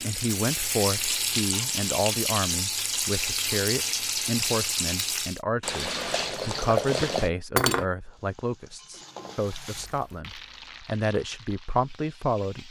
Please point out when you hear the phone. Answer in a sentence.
The phone can't be heard in this clip.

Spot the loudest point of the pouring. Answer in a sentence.
The loudest moment of the pouring is at 7 seconds.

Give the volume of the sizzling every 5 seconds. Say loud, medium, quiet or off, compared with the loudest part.
loud, medium, quiet.